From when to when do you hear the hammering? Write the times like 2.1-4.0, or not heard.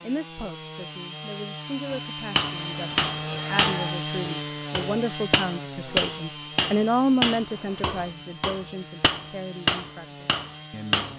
1.9-11.1.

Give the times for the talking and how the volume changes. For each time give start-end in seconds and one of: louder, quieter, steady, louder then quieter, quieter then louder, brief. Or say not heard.
0.0-11.1 louder then quieter.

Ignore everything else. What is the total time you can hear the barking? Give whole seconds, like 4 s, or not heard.
not heard.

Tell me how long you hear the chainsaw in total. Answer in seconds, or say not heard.
11 s.